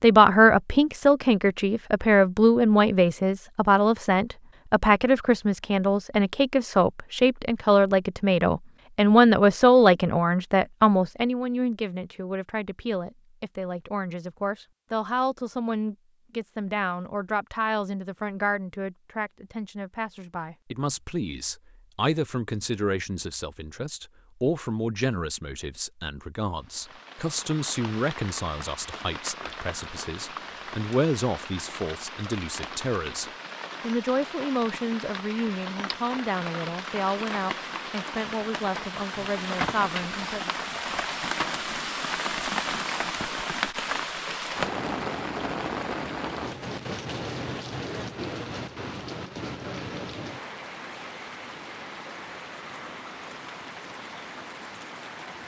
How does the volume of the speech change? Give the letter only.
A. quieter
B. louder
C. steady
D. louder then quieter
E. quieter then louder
A.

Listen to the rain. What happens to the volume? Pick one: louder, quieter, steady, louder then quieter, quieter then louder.
louder then quieter.